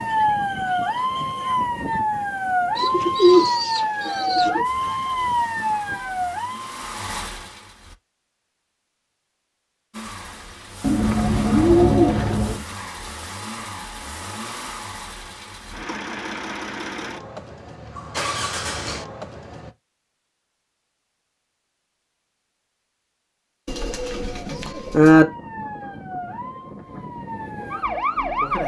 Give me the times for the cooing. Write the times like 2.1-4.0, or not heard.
2.8-4.7, 10.8-12.7, 23.6-25.2.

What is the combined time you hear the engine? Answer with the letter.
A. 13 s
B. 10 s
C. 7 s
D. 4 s
A.